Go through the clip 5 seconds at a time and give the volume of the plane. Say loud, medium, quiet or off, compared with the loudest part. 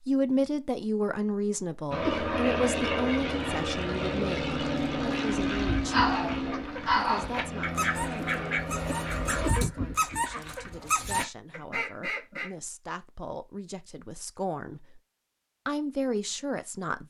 loud, loud, off, off.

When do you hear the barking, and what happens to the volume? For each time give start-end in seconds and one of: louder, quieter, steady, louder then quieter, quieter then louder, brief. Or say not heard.
5.9-11.2 quieter then louder.